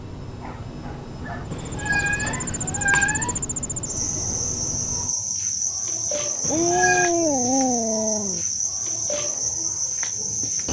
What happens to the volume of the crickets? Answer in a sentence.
The volume of the crickets stays about the same.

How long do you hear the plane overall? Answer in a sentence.
You can hear the plane for 5 seconds altogether.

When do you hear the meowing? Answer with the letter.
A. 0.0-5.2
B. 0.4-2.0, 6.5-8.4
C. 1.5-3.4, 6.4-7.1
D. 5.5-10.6
C.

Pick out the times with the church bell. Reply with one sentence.
The church bell can't be heard in this clip.